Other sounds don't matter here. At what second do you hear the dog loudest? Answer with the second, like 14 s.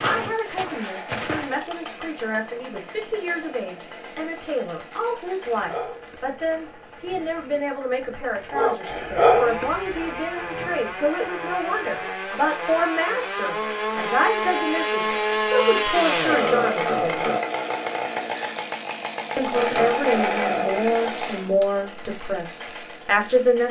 9 s.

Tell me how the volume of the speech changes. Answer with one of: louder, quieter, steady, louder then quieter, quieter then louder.
louder.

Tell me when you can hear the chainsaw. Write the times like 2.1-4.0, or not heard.
0.0-23.6.